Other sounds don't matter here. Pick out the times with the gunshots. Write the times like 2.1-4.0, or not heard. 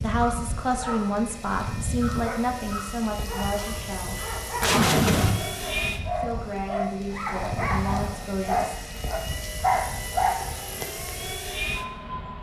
3.5-5.3.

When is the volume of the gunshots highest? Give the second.
5 s.